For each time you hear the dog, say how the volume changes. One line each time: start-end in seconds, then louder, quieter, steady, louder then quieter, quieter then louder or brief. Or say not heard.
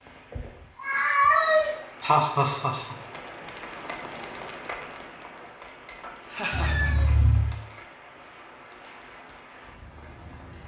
not heard.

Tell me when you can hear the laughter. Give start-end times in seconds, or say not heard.
2.0-3.0, 6.2-7.5.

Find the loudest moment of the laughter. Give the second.
2 s.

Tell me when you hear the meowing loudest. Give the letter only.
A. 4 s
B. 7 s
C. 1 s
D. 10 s
C.